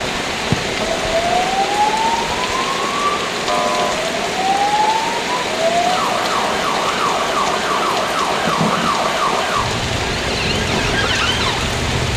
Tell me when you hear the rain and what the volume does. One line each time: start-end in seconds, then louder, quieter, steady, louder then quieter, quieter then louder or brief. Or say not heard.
0.0-12.1 steady.